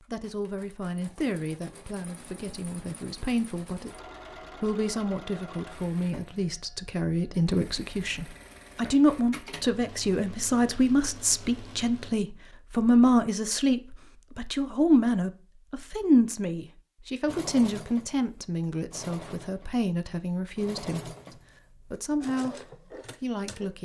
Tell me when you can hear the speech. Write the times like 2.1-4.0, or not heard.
0.1-4.0, 4.6-21.1, 21.9-22.6, 23.2-23.7.